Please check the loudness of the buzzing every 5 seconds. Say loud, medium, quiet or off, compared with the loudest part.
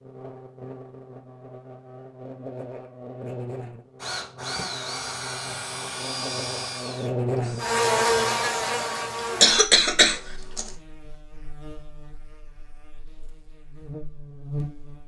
quiet, loud, quiet.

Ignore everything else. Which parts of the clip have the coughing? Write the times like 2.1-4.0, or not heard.
9.4-10.7.